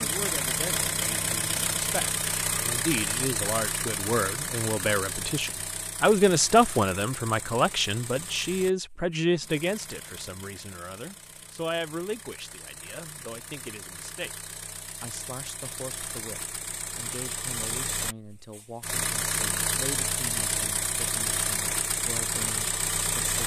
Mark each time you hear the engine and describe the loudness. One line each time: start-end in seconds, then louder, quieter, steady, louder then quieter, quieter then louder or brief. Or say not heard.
0.0-23.4 quieter then louder.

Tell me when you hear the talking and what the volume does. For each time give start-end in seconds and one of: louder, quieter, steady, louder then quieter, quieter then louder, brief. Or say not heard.
0.0-23.4 louder then quieter.